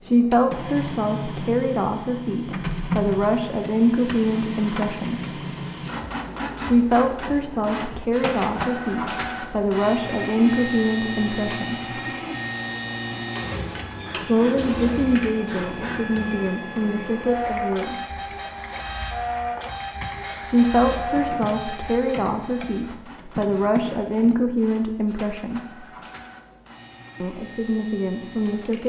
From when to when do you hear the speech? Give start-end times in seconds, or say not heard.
0.0-5.3, 6.6-11.9, 14.2-18.1, 20.4-25.9, 27.2-28.8.